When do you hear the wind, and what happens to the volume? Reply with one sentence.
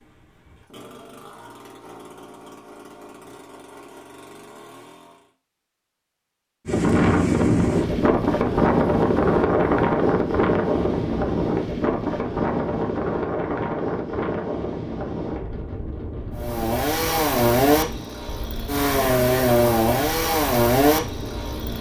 You can hear the wind from 6.7 to 21.7 s, getting quieter.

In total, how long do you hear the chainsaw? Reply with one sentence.
The chainsaw can be heard for 11 seconds in total.